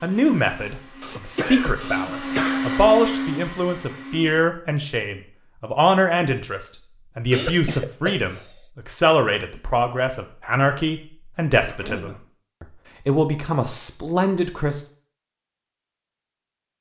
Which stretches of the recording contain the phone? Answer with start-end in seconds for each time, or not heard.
not heard.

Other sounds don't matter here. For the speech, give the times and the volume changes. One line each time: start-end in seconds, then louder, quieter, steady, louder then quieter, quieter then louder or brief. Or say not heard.
0.0-14.8 steady.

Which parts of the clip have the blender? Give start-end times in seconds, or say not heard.
0.0-4.5.